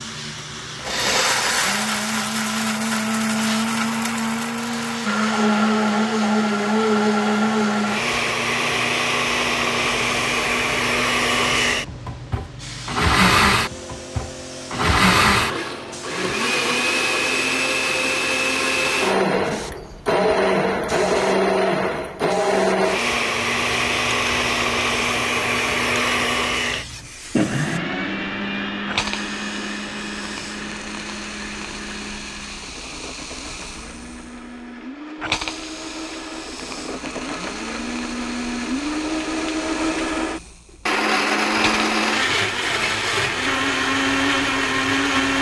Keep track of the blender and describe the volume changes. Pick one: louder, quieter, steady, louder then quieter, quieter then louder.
quieter then louder.